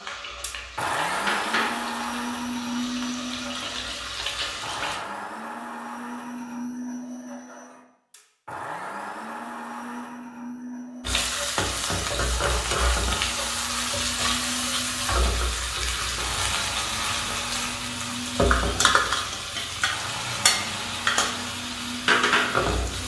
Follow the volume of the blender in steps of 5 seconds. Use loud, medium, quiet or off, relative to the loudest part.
loud, medium, medium, medium, medium.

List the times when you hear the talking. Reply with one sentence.
You can't hear the talking here.